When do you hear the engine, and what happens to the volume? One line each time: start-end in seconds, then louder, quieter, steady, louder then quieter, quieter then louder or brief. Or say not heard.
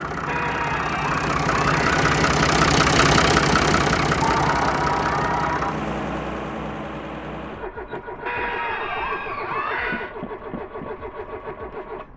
0.0-12.1 quieter.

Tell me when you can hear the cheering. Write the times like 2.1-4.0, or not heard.
0.2-2.3, 4.2-5.8, 8.2-10.2.